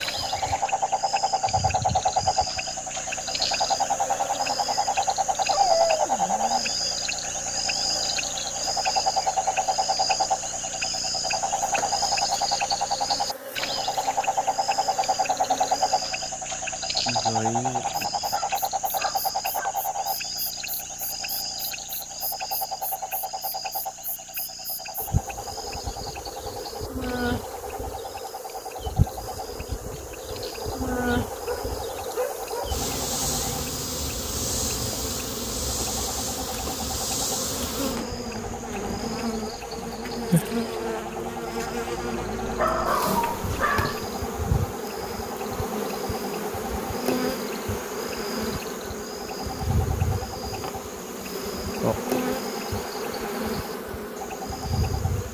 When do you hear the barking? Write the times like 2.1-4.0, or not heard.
5.5-6.7, 17.2-19.7, 31.4-32.8, 42.5-44.0.